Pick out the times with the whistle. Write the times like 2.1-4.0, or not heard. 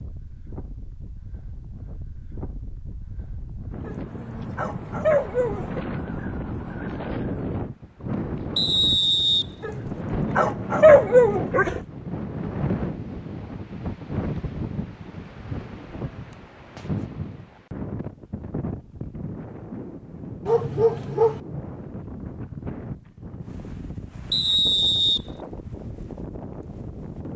8.6-9.9, 24.3-25.2.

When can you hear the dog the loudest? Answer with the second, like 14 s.
11 s.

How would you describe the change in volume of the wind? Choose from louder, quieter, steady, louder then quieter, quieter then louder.
louder then quieter.